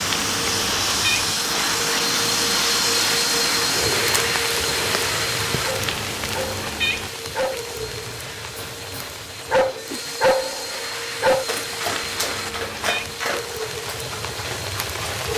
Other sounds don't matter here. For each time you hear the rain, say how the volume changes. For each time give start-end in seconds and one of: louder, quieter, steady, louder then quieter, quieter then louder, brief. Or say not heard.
0.0-15.3 quieter then louder.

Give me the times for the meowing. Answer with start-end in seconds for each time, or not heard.
0.0-1.4, 5.8-7.1, 11.8-13.2.